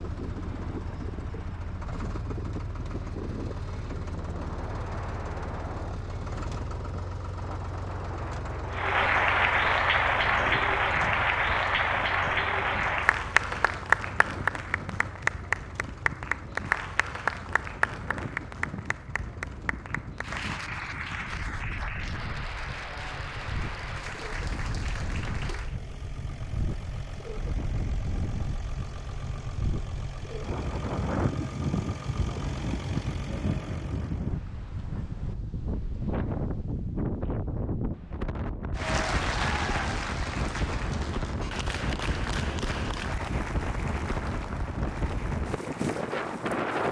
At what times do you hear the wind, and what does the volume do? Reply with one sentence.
The wind can be heard from 0.0 to 46.8 s, getting louder.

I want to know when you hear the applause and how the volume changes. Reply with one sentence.
You can hear the applause from 8.7 to 25.8 s, getting quieter; and from 38.8 to 46.8 s, getting quieter.